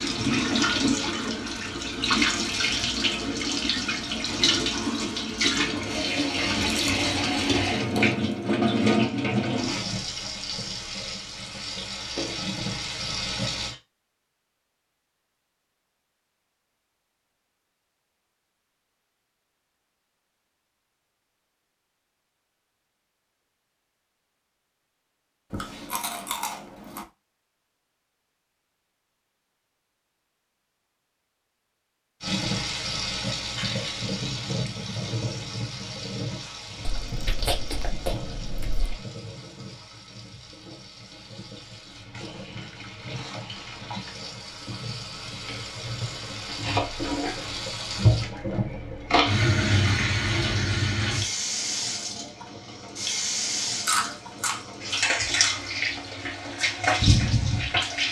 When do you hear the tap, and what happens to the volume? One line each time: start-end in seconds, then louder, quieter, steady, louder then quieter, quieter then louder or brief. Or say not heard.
0.0-13.8 quieter
32.2-58.0 quieter then louder.